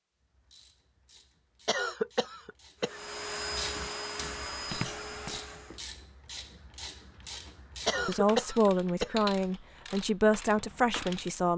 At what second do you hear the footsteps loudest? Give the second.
5 s.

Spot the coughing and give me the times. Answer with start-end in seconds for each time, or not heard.
1.6-3.0, 7.8-9.2.